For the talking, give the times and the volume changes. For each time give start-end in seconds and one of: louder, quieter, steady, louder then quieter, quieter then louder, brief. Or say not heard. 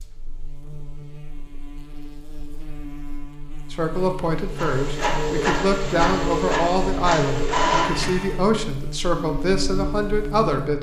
3.7-10.7 steady.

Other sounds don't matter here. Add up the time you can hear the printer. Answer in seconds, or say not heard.
4 s.